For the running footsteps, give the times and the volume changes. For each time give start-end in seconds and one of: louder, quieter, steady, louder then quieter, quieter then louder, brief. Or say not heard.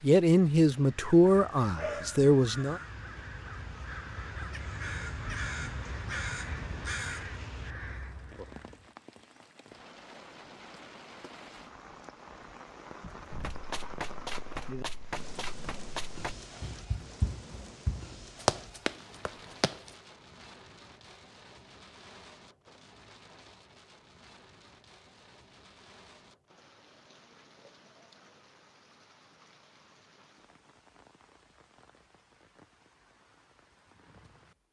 13.3-19.9 louder.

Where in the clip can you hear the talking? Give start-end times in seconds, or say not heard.
0.0-2.8.